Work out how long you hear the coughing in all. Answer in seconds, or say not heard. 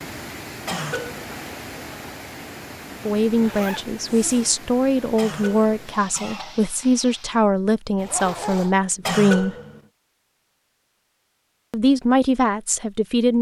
3 s.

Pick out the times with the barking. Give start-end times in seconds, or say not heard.
not heard.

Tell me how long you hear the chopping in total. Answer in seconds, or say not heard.
not heard.